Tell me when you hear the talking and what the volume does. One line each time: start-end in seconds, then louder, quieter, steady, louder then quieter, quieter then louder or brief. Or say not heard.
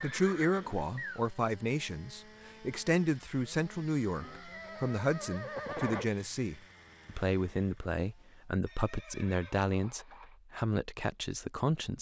0.0-11.9 steady.